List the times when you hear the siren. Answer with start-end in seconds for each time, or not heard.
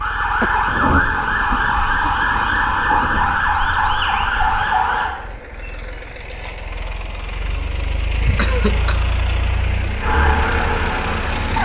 0.0-5.1, 10.0-11.5.